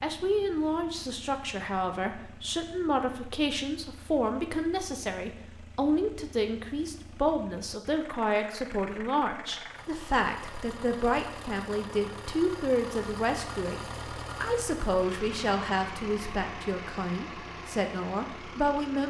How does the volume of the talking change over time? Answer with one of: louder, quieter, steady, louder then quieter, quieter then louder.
steady.